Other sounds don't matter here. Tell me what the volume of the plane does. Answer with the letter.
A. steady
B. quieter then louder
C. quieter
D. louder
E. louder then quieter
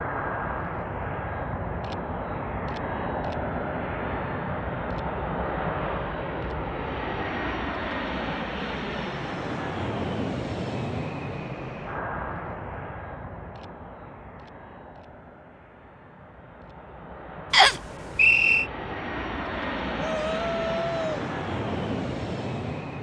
B.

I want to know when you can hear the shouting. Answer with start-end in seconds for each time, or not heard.
19.9-21.2.